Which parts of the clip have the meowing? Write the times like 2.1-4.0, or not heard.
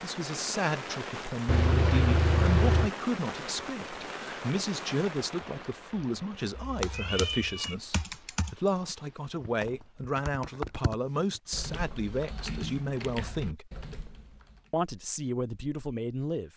1.4-2.9, 6.8-7.8, 11.4-13.0.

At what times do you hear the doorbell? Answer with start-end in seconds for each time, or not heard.
not heard.